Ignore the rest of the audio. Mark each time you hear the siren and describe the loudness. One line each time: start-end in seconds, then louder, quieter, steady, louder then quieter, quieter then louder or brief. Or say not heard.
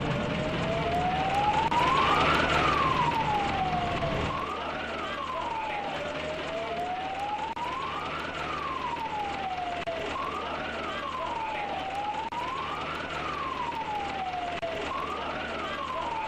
0.0-16.2 quieter.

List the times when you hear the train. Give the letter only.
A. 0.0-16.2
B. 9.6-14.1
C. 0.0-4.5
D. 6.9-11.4
C.